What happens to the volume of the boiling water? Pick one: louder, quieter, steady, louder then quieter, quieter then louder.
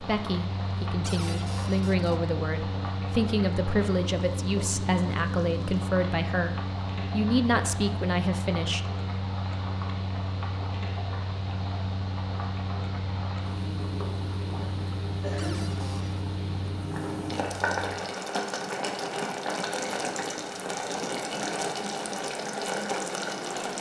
louder.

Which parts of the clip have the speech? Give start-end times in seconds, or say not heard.
0.0-8.8.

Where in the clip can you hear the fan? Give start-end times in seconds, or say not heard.
0.0-23.7.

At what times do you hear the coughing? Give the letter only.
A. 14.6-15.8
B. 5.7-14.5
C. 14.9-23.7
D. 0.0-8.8
A.